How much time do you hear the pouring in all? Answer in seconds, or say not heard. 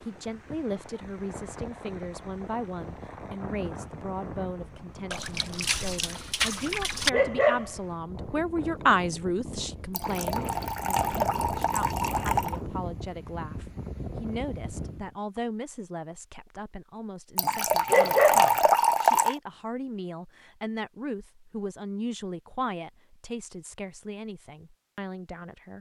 7 s.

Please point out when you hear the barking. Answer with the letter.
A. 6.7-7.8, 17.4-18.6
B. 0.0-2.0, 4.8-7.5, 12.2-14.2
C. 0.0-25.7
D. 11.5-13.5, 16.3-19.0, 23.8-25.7
A.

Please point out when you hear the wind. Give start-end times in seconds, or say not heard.
0.0-15.2.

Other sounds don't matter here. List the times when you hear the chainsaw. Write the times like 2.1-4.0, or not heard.
not heard.